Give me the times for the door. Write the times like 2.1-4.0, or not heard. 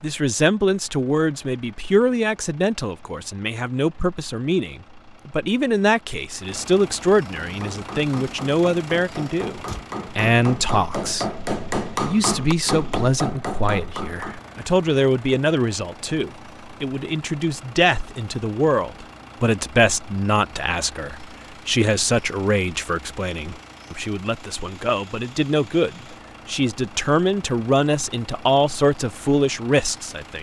9.4-9.9.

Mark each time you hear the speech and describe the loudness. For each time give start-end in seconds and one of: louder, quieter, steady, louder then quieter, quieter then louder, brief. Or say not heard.
0.0-30.3 steady.